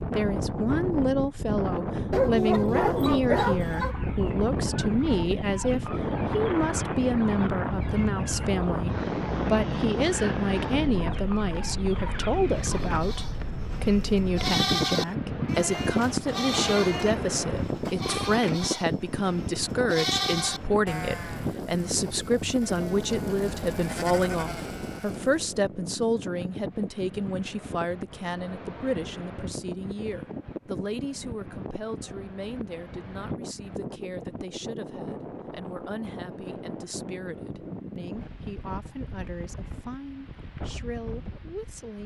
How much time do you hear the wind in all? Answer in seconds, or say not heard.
42 s.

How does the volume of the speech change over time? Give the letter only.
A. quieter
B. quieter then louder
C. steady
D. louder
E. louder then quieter
A.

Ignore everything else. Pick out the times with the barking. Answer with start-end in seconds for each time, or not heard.
2.1-4.0.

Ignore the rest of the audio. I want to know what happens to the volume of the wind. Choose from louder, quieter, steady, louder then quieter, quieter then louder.
quieter.